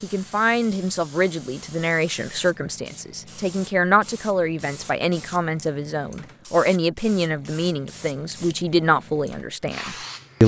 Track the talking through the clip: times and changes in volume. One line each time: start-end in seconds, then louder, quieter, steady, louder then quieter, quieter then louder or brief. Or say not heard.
0.0-10.4 steady.